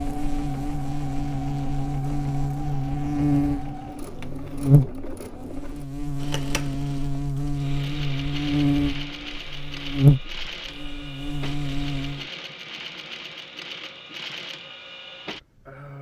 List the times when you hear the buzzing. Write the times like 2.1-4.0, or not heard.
0.0-12.2.